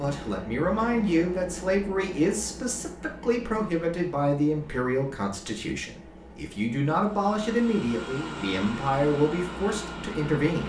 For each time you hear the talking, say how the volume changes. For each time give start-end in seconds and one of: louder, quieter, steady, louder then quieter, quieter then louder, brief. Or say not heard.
0.0-10.6 steady.